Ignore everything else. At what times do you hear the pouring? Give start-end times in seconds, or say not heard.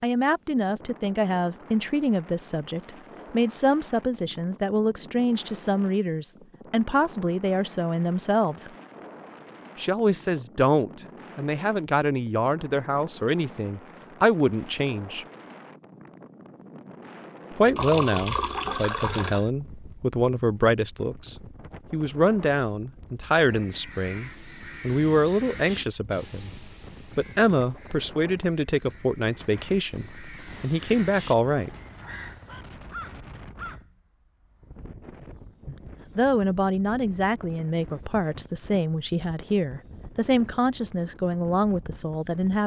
17.8-19.5.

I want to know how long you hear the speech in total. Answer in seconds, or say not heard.
35 s.